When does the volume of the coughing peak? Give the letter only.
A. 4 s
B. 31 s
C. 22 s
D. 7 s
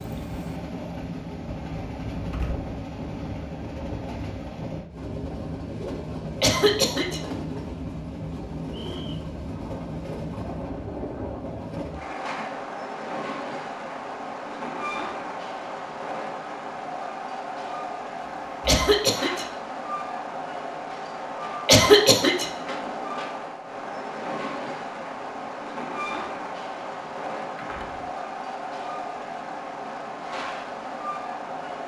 C.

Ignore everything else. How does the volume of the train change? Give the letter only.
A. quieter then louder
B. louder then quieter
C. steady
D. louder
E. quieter
C.